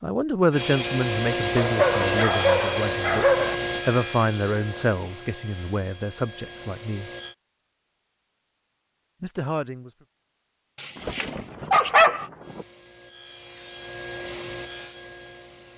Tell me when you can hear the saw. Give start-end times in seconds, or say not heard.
0.5-7.3, 12.4-15.7.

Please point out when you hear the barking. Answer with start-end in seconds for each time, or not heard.
1.6-3.5, 10.8-12.2.